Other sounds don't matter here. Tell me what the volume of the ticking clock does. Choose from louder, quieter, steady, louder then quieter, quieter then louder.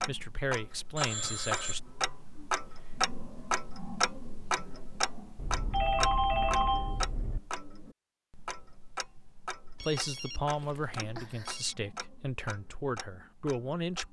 quieter.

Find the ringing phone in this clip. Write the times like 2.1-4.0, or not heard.
0.9-1.8, 5.3-7.4, 9.8-11.8.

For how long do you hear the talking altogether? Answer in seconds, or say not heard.
6 s.